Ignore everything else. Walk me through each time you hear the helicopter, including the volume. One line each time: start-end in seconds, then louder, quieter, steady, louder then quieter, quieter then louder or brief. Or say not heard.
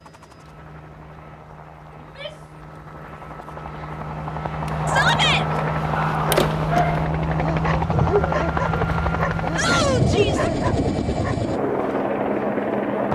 0.0-13.1 louder.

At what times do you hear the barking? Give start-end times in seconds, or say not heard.
4.7-11.4.